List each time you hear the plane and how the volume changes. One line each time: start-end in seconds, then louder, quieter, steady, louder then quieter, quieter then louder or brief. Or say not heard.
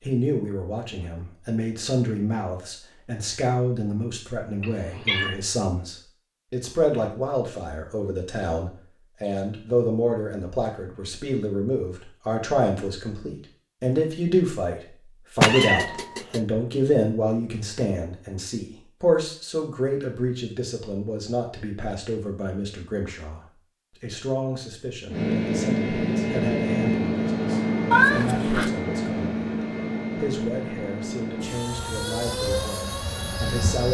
25.1-33.8 quieter.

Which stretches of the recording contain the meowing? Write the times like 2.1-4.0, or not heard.
4.6-5.3, 15.4-16.4, 27.9-28.7.